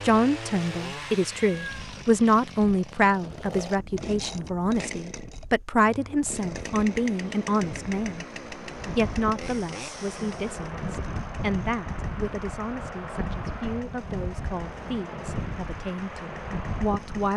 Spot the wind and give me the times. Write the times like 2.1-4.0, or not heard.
3.2-17.3.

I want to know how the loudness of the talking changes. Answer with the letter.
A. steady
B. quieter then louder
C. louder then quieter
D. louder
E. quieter
E.